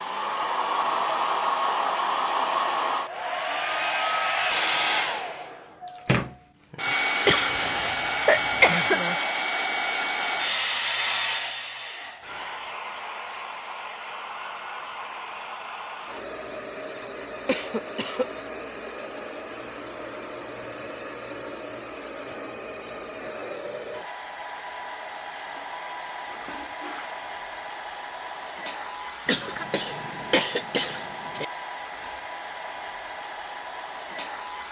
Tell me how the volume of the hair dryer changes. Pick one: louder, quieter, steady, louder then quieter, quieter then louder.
quieter.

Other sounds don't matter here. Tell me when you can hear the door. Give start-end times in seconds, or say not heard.
not heard.